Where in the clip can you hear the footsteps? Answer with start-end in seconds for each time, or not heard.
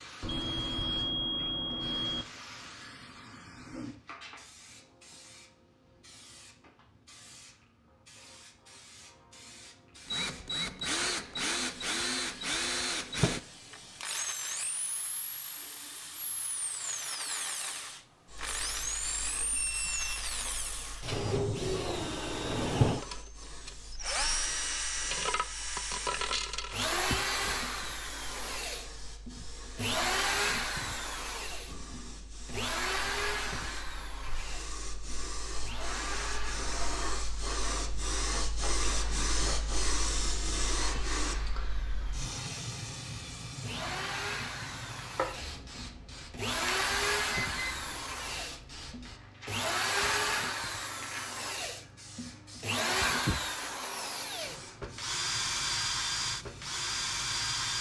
not heard.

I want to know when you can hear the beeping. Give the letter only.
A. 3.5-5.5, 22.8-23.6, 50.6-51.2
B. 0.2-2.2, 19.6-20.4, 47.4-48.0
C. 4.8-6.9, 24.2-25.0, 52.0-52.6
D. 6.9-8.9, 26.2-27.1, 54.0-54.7
B.